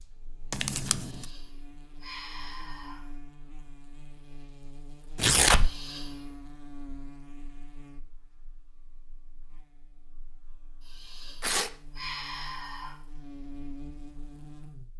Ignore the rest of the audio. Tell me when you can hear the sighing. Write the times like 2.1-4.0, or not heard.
0.9-3.1, 5.5-6.4, 10.8-13.0.